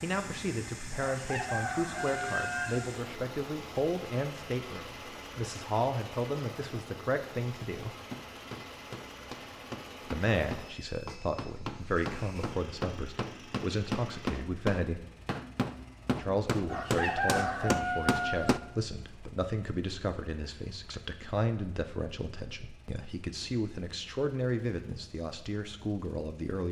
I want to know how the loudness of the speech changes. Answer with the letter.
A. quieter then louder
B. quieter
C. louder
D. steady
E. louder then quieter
D.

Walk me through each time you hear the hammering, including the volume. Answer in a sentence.
The hammering can be heard from 7.9 to 18.6 s, getting louder.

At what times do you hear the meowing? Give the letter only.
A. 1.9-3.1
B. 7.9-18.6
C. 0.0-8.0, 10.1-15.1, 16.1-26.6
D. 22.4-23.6
A.